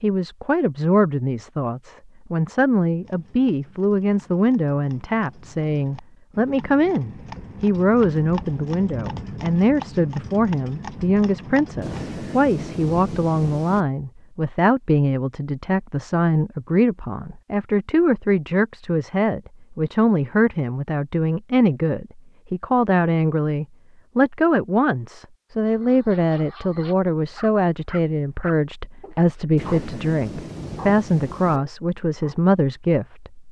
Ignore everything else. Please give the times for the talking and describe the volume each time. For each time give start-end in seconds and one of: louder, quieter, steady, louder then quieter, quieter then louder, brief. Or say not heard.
0.0-33.4 steady.